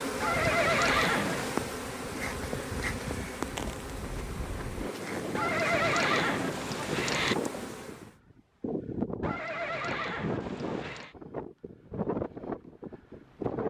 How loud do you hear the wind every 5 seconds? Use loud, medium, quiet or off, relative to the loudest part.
medium, loud, loud.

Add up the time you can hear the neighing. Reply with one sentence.
You can hear the neighing for 5 seconds altogether.